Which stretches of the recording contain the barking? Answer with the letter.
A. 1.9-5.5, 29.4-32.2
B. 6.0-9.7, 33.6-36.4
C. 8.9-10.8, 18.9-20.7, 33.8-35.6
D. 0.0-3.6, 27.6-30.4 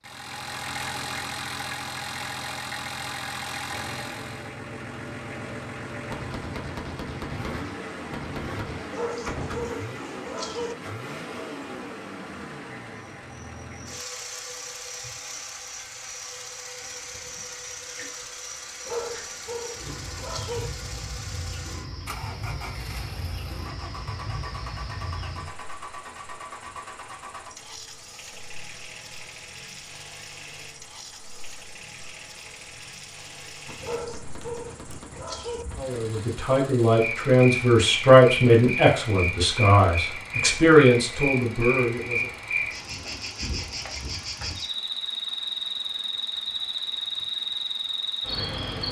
C.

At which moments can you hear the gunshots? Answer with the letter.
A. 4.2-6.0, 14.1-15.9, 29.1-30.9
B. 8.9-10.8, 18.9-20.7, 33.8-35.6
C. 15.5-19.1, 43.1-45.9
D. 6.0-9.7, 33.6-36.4
D.